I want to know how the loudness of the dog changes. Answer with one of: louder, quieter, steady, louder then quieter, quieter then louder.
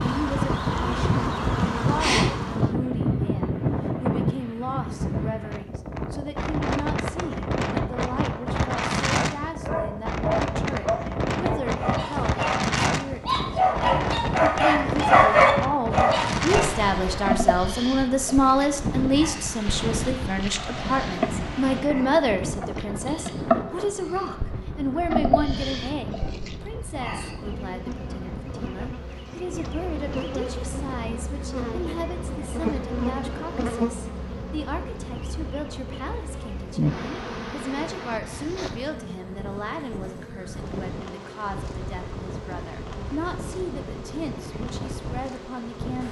louder.